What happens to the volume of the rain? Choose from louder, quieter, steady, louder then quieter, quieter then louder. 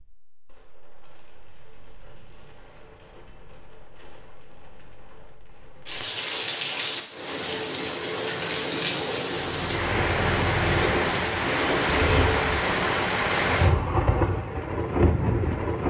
louder.